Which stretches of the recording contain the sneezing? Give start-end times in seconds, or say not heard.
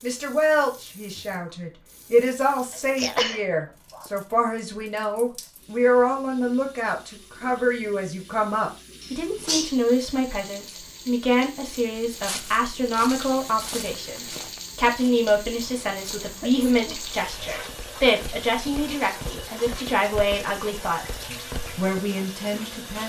3.0-4.0, 9.0-9.8, 16.4-17.1.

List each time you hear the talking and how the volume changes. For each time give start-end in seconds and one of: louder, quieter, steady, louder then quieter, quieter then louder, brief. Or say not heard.
0.0-23.0 steady.